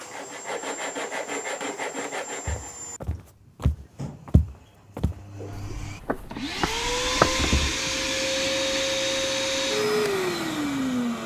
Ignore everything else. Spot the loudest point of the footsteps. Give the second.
7 s.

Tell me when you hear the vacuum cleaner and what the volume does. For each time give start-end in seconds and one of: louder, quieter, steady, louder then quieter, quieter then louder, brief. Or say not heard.
0.0-11.2 louder.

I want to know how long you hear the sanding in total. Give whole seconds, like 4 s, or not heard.
3 s.